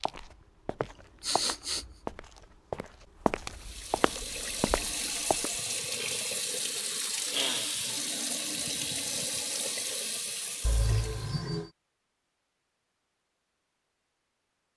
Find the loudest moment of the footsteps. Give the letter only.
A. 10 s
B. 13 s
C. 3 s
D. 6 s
C.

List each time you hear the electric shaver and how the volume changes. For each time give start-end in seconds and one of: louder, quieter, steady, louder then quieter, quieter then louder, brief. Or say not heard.
not heard.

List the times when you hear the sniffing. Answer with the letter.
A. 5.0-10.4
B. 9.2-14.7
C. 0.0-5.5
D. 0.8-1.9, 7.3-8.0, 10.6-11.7
D.